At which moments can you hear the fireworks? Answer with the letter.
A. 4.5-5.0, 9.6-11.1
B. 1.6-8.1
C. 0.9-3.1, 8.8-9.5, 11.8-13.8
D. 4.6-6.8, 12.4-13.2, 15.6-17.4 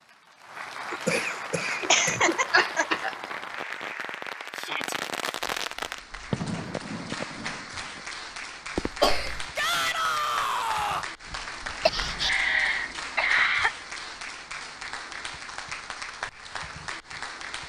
B.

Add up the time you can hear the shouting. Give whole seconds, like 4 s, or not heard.
2 s.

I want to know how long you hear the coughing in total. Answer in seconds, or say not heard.
5 s.